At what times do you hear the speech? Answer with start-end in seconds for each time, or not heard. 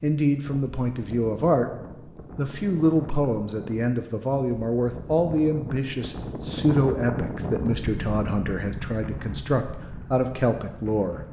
0.0-1.7, 2.4-11.2.